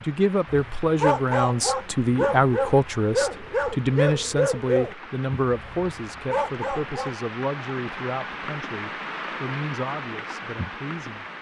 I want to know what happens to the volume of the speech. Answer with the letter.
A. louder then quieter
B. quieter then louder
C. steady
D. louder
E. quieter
E.